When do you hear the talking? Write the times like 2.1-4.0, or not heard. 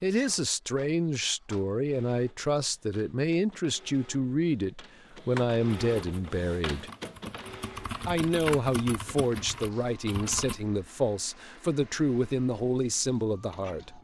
0.0-6.9, 8.1-13.9.